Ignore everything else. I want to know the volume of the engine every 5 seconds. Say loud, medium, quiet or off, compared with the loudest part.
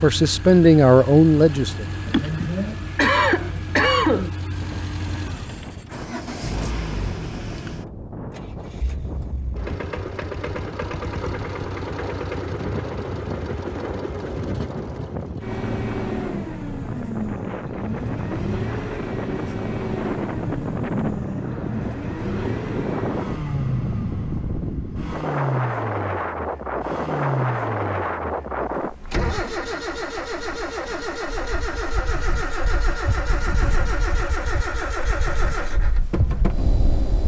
medium, medium, loud, loud, loud, loud, loud, loud.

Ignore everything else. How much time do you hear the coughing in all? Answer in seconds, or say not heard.
2 s.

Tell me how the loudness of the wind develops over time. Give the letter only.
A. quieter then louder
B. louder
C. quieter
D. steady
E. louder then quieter
E.